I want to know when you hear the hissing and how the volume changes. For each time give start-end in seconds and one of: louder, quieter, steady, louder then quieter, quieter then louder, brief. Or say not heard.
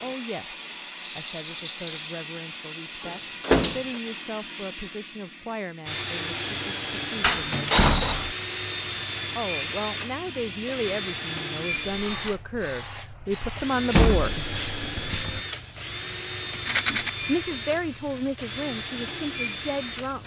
0.0-20.2 quieter.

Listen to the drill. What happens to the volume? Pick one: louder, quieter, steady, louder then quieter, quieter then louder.
steady.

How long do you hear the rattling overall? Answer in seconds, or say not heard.
2 s.